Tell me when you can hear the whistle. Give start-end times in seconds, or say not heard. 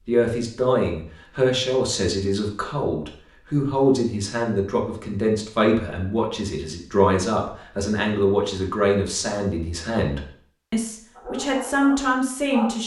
not heard.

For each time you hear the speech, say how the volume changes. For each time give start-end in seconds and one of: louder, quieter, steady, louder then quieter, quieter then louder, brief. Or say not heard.
0.1-12.8 steady.